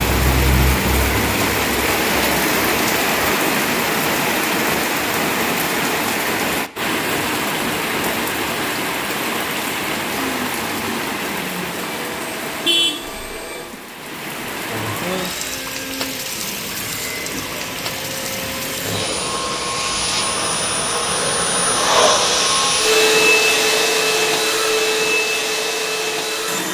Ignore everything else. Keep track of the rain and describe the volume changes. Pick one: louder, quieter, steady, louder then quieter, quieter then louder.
quieter.